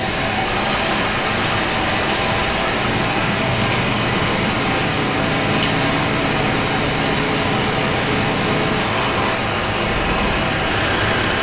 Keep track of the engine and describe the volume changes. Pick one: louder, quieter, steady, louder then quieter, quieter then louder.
steady.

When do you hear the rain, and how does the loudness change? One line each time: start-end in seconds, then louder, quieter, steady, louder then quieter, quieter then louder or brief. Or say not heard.
0.0-11.3 steady.